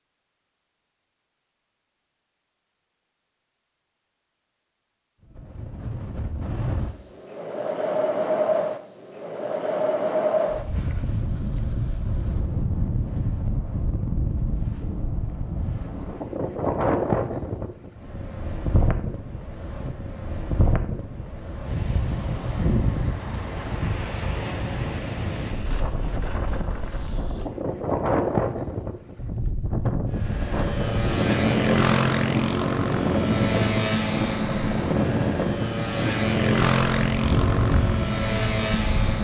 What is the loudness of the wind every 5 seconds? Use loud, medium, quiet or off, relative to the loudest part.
off, loud, loud, loud, loud, loud, loud, loud.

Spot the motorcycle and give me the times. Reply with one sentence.
The motorcycle can be heard from 30.1 to 39.2 s.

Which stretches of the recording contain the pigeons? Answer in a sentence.
You can't hear the pigeons here.